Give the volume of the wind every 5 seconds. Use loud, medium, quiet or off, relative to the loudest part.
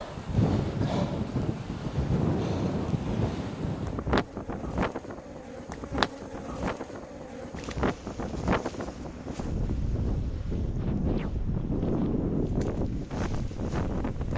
loud, medium, loud.